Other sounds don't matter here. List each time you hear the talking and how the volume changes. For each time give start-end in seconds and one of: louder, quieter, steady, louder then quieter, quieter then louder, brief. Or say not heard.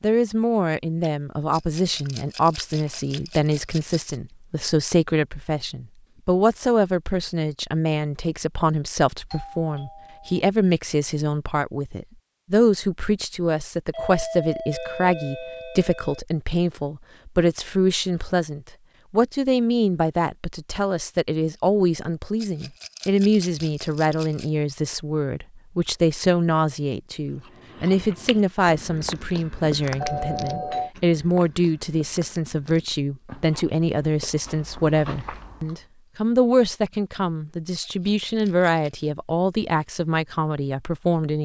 0.0-41.4 steady.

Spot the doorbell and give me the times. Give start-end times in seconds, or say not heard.
9.3-10.4, 13.9-16.2, 30.0-30.9.